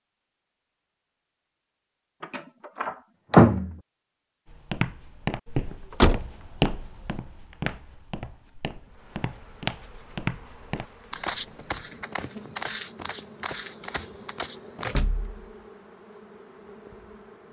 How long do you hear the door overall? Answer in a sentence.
You can hear the door for 3 seconds altogether.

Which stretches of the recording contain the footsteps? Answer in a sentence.
You can hear the footsteps from 4.5 to 14.9 s.